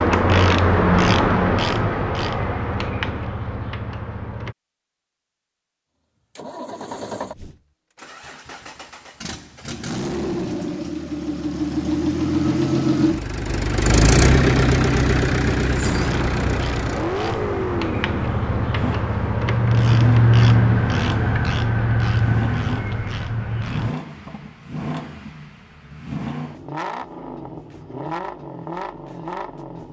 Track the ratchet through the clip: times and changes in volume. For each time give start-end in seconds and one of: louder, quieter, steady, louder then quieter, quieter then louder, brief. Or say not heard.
0.0-4.5 quieter
15.8-23.9 louder then quieter.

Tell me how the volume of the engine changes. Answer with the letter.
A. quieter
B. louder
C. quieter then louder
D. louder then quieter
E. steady
D.